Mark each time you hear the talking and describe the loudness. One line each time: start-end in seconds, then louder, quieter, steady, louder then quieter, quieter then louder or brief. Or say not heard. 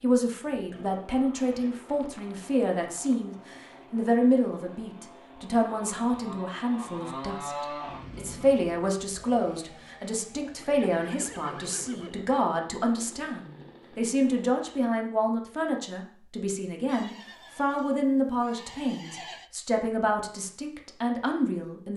0.0-21.9 steady.